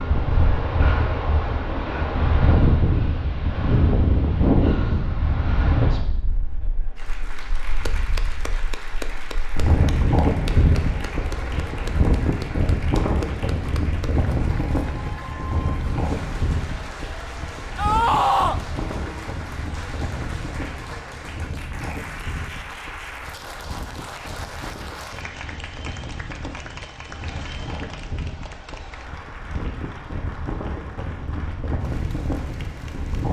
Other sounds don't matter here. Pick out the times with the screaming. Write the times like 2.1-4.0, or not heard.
17.8-18.6.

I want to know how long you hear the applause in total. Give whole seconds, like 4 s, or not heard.
26 s.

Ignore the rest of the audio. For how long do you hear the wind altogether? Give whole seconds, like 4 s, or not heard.
33 s.